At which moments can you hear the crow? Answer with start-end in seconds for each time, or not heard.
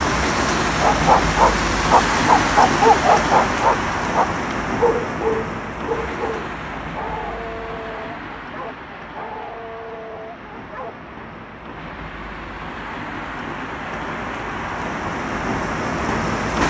not heard.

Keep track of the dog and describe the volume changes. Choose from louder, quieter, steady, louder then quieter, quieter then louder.
quieter.